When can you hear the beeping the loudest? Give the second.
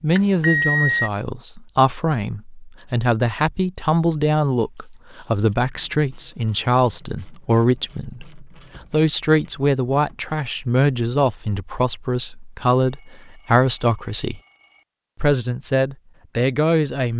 1 s.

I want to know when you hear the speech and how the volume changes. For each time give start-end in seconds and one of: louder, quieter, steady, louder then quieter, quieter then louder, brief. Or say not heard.
0.0-14.4 steady
15.2-17.1 brief.